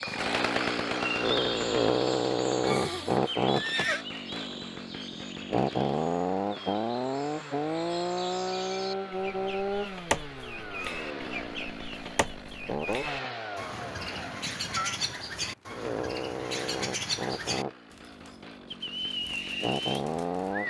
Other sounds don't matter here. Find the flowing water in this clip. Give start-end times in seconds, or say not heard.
not heard.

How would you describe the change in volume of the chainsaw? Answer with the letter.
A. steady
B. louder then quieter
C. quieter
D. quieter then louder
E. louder
C.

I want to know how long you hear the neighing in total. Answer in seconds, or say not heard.
3 s.